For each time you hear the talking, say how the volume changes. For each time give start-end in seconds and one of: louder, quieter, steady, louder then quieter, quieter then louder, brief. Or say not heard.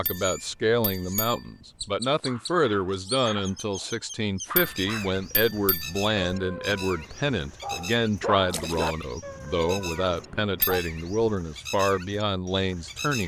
0.0-13.2 steady.